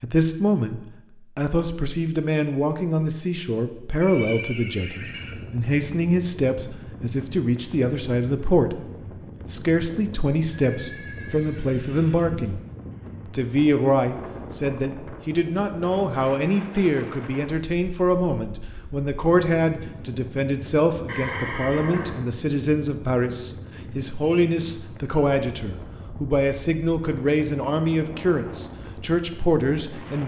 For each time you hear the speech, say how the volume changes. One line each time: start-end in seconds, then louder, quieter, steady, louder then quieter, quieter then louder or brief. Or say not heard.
0.0-12.6 steady
13.2-30.2 steady.